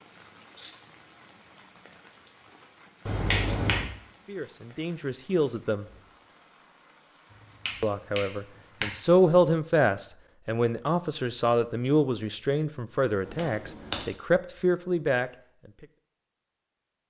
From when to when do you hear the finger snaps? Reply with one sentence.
You can hear the finger snaps from 3.0 to 3.9 s, from 7.7 to 8.8 s and from 13.2 to 14.1 s.